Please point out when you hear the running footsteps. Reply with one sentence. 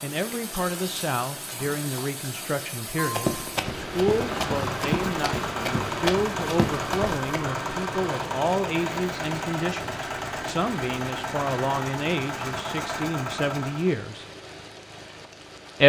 You can hear the running footsteps from 3.0 to 7.5 s.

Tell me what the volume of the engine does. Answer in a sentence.
The volume of the engine stays about the same.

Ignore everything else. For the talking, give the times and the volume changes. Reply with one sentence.
You can hear the talking from 0.0 to 14.2 s, at a steady volume.